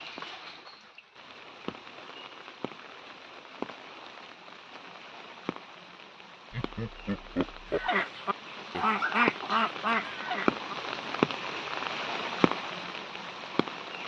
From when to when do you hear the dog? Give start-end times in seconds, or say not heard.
not heard.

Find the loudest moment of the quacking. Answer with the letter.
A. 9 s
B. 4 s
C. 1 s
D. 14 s
A.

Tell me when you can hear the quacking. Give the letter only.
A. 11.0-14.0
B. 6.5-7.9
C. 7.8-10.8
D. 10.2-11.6
C.